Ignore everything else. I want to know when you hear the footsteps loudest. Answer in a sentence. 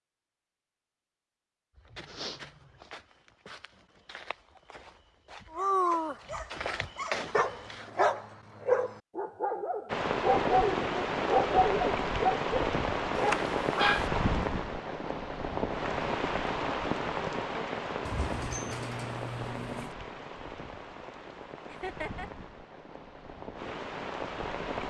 The volume of the footsteps peaks at 7 seconds.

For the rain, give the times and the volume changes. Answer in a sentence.
The rain can be heard from 9.8 to 24.8 s, getting quieter.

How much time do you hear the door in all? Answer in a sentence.
The door can be heard for 2 seconds in total.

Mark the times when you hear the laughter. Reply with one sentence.
You can hear the laughter from 21.6 to 22.3 s.